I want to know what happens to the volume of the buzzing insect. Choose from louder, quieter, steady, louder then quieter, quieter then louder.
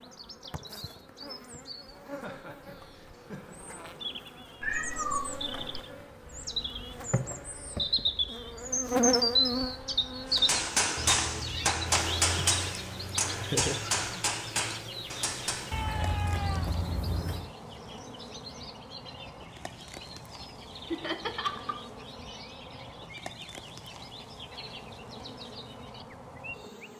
louder then quieter.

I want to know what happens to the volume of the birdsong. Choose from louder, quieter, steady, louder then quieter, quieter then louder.
louder then quieter.